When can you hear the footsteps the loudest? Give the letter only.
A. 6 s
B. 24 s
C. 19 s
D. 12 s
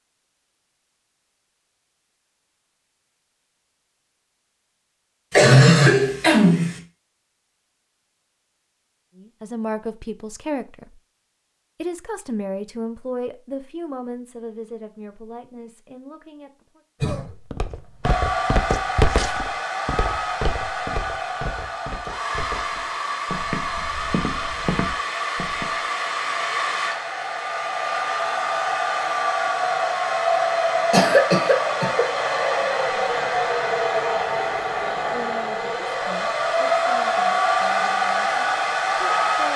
C.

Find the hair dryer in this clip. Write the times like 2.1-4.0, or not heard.
18.0-39.5.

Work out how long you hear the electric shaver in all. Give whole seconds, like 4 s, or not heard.
not heard.